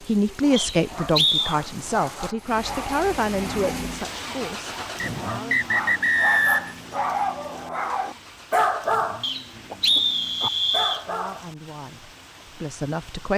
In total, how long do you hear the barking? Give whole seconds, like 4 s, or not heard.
11 s.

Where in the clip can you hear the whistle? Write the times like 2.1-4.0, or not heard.
0.6-1.6, 5.0-6.8, 9.2-11.1.